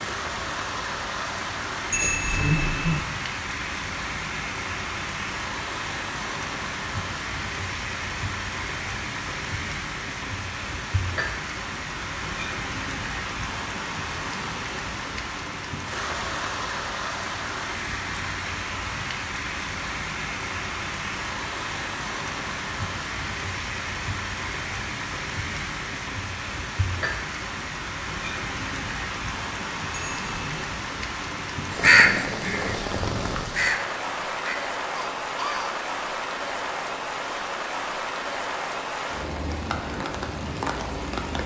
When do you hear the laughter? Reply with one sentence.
You can't hear the laughter here.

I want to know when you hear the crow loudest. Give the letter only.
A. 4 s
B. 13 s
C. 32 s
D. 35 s
C.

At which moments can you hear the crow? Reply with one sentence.
You can hear the crow from 31.7 to 35.8 s.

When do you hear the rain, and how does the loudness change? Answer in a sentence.
The rain can be heard from 0.0 to 41.4 s, at a steady volume.